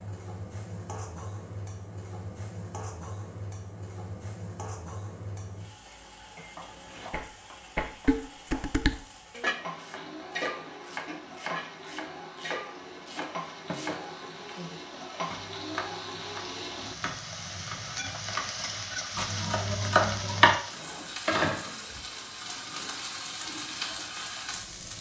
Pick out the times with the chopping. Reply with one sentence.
You can hear the chopping from 9.8 to 20.6 s.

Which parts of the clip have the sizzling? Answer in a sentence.
The sizzling can be heard from 0.0 to 24.9 s.